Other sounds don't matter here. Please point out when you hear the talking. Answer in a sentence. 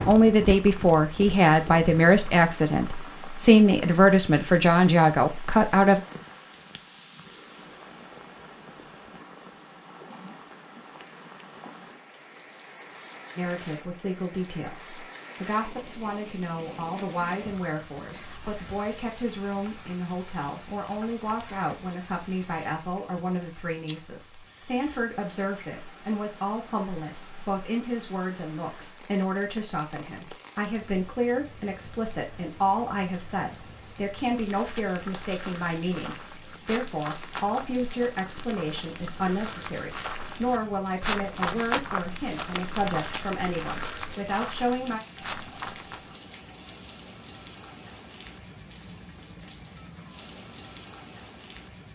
You can hear the talking from 0.1 to 6.0 s and from 13.3 to 45.0 s.